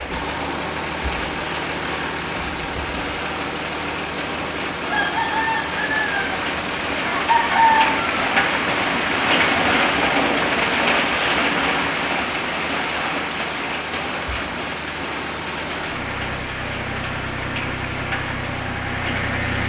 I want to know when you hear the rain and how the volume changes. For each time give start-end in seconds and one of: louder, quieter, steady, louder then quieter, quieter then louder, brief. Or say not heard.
0.0-19.6 louder then quieter.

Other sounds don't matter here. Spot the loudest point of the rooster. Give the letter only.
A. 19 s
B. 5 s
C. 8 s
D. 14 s
C.